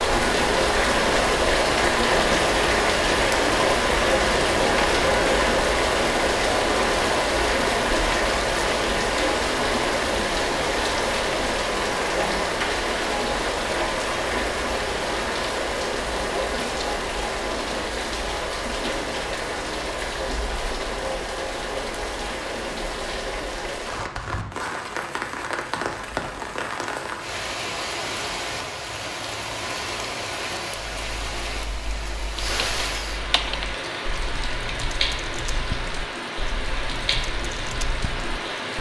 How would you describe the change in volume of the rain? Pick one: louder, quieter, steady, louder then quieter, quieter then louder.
quieter.